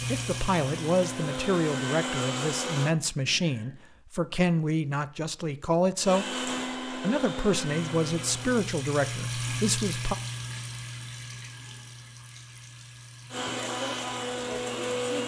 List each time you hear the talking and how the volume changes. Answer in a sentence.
The talking can be heard from 0.1 to 10.2 s, at a steady volume.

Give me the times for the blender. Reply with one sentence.
You can hear the blender from 0.0 to 3.0 s, from 6.0 to 8.7 s and from 13.3 to 15.2 s.